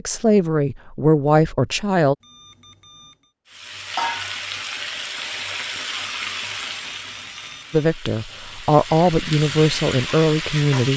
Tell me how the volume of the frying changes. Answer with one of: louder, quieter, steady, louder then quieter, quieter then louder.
quieter then louder.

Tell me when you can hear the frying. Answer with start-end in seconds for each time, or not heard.
3.5-10.9.